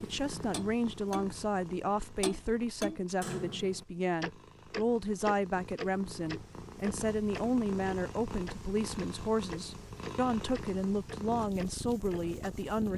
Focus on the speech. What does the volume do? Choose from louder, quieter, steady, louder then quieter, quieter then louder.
steady.